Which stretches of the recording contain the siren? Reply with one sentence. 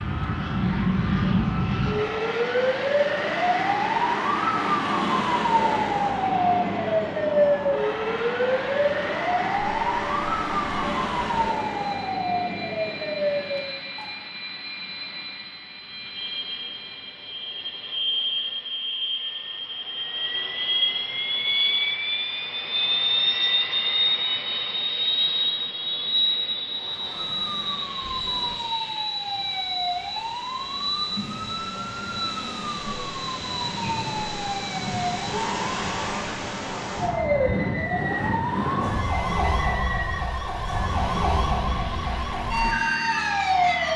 The siren can be heard from 0.0 to 14.2 s and from 26.6 to 43.9 s.